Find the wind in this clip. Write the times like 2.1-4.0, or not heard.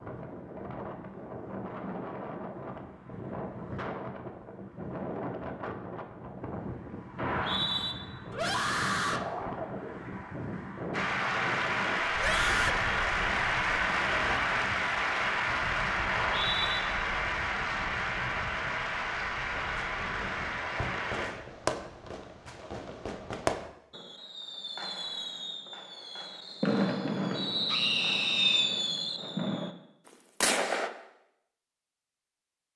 0.0-20.6.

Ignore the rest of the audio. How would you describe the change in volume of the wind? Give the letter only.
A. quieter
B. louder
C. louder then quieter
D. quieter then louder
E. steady
A.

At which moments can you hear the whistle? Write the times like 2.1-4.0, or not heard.
7.2-8.0, 16.1-16.8, 27.4-28.9.